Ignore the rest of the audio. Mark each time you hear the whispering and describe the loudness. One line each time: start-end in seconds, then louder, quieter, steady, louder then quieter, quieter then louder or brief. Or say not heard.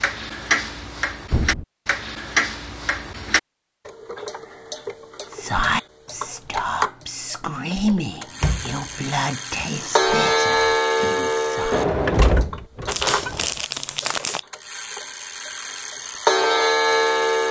5.2-11.8 quieter.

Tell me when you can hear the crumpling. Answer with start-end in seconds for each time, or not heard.
12.8-14.4.